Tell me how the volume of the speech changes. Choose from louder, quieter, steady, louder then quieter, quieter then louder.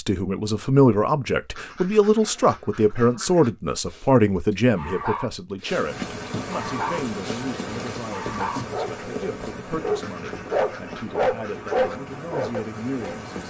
quieter.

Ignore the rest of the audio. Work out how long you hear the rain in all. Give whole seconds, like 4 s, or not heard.
8 s.